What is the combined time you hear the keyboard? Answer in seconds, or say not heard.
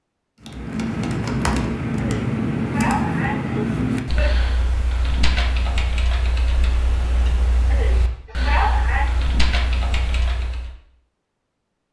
10 s.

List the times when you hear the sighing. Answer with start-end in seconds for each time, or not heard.
1.9-4.4, 7.7-9.2.